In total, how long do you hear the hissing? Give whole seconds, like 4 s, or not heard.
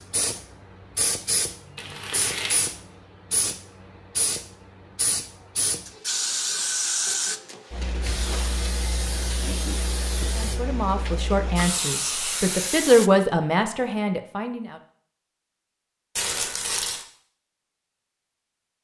13 s.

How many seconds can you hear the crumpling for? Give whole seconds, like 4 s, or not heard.
2 s.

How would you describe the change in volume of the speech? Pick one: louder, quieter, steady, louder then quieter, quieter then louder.
louder then quieter.